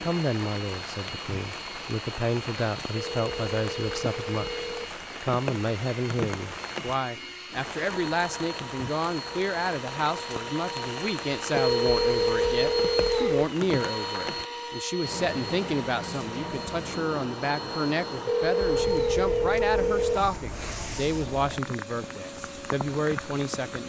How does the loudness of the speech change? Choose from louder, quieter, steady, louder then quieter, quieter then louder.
steady.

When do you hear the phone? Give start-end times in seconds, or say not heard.
3.0-4.9, 11.5-13.5, 18.2-20.2.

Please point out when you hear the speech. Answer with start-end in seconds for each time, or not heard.
0.0-23.8.